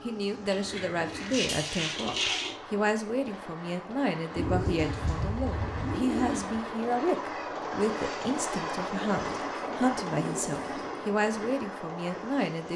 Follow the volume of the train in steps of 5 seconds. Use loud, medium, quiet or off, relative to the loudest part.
medium, loud, loud.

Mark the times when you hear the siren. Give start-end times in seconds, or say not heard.
not heard.